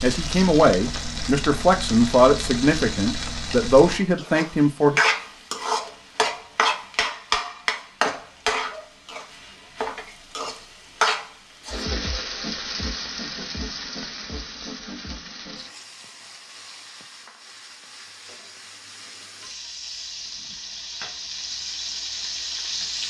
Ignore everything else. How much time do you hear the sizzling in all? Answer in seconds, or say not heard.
23 s.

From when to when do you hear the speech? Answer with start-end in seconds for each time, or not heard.
0.0-5.0.